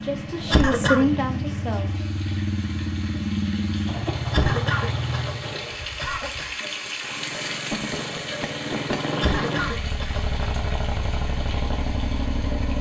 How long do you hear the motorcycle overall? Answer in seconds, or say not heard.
13 s.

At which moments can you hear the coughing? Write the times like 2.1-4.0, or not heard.
0.5-1.1, 4.3-6.5, 9.2-10.2.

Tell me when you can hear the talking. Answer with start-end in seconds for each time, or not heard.
0.0-1.9.